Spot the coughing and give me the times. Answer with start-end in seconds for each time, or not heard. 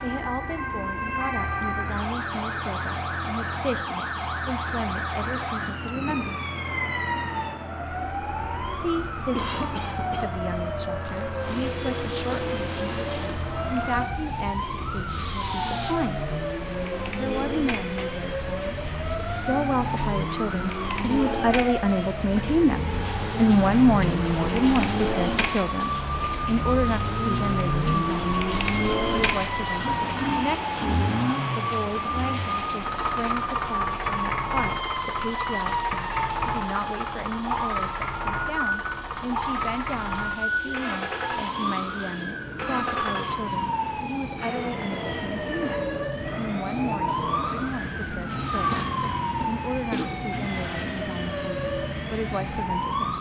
9.3-10.8, 48.7-50.1.